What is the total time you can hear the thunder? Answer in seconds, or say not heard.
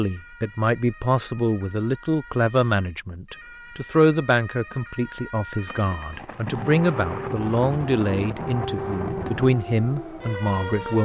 4 s.